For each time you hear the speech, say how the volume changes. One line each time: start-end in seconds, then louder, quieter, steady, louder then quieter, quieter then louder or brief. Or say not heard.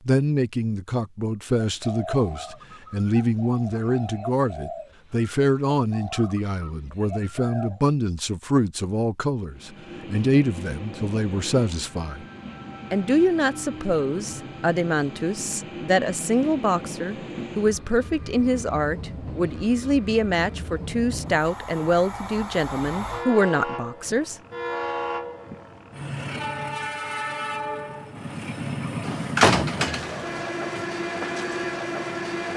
0.1-12.2 steady
12.9-24.4 steady.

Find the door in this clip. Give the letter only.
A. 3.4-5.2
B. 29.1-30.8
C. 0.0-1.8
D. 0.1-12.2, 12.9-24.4
B.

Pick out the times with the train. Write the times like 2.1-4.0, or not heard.
9.5-32.5.